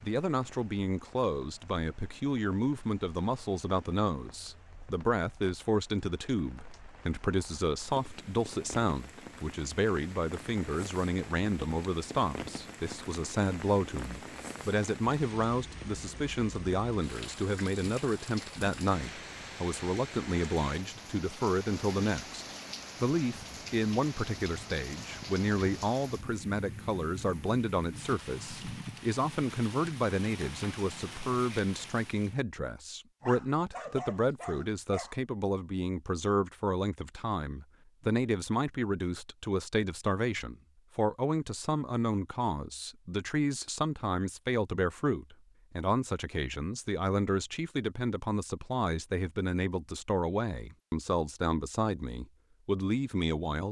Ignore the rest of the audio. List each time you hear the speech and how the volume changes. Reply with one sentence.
The speech can be heard from 0.0 to 53.6 s, at a steady volume.